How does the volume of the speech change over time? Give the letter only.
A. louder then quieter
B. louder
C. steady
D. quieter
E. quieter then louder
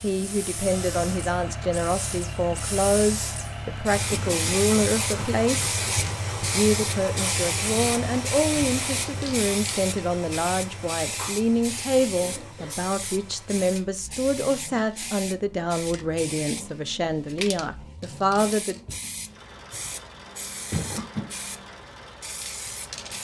C.